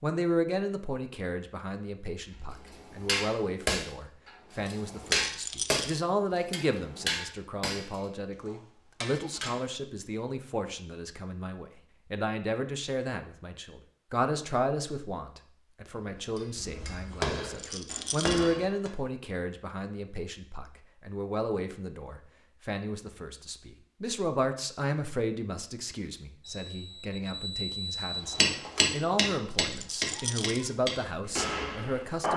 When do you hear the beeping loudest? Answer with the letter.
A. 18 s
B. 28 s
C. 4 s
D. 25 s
B.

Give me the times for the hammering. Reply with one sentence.
You can hear the hammering from 2.2 to 9.6 s, from 16.1 to 18.9 s and from 28.4 to 32.3 s.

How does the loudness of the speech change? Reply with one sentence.
The volume of the speech stays about the same.